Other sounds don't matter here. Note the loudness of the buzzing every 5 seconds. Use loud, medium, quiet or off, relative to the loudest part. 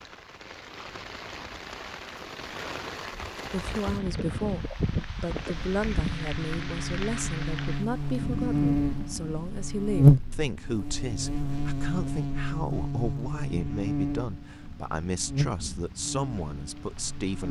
off, medium, loud, medium.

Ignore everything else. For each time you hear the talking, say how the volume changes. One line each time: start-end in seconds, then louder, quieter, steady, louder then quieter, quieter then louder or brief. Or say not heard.
3.5-17.4 steady.